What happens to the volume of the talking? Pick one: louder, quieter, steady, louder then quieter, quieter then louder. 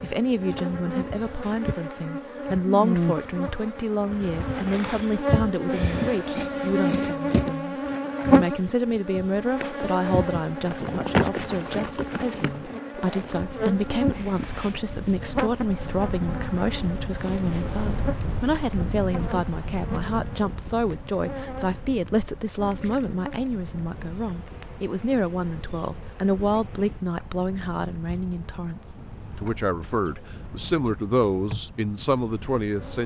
steady.